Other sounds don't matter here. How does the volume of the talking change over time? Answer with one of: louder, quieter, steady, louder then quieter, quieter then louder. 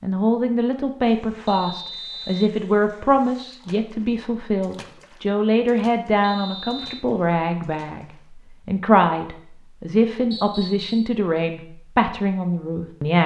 steady.